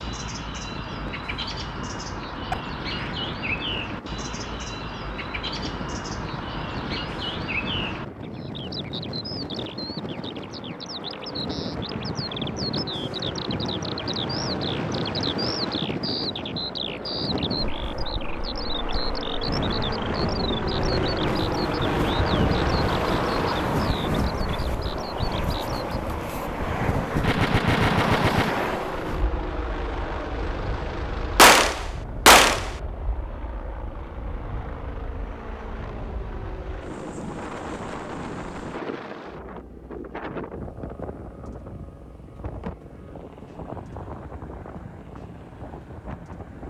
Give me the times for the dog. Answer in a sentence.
The dog can't be heard in this clip.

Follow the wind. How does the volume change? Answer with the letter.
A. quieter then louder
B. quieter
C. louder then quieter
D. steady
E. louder
C.